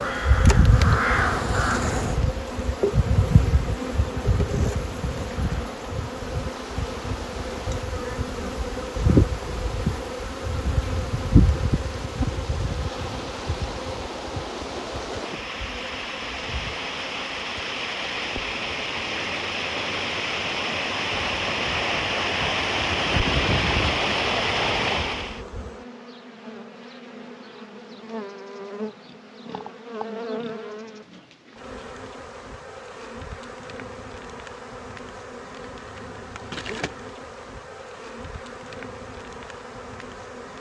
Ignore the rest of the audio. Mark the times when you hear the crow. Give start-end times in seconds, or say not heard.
0.0-2.2.